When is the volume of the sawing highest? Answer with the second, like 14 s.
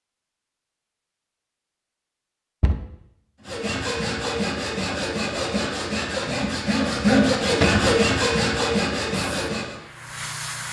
7 s.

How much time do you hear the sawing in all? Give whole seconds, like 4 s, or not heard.
6 s.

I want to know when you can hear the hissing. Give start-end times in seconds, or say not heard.
9.1-10.6.